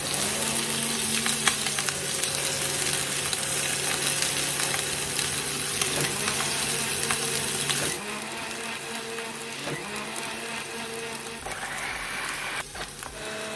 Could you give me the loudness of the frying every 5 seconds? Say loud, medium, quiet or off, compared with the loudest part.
loud, loud, quiet.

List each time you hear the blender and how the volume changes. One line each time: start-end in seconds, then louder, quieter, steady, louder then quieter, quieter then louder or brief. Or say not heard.
0.0-13.5 steady.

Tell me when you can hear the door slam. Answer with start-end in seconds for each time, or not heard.
not heard.